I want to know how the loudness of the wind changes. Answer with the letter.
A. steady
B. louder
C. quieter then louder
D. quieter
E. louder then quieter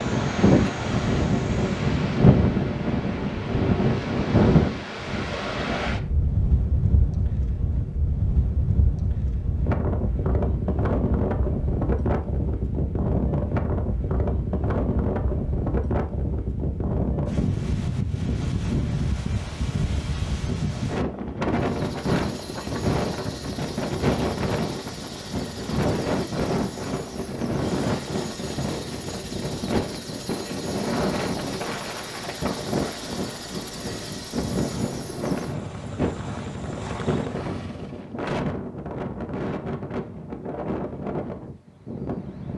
D.